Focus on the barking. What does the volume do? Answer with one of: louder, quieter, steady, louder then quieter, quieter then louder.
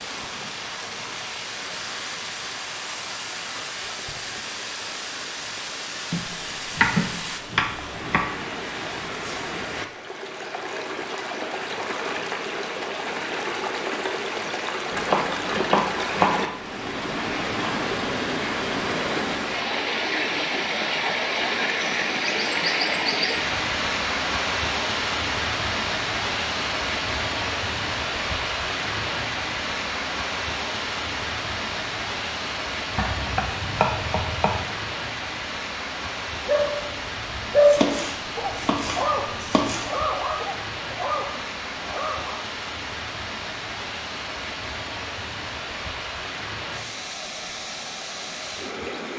louder then quieter.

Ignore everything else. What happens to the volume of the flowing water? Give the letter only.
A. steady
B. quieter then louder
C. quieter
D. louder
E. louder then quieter
E.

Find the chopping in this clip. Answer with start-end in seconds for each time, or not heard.
6.1-8.2, 14.9-16.5, 33.0-34.6, 37.6-39.9.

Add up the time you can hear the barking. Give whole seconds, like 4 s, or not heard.
6 s.